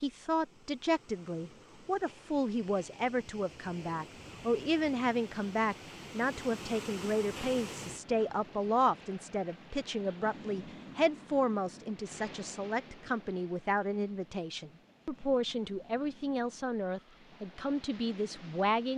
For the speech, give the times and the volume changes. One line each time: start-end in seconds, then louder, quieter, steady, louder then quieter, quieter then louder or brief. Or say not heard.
0.0-18.9 steady.